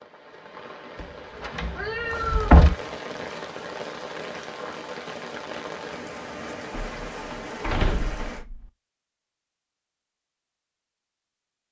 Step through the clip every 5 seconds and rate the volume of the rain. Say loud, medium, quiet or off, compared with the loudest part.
loud, loud, off.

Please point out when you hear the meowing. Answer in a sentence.
The meowing can be heard from 1.7 to 3.0 s.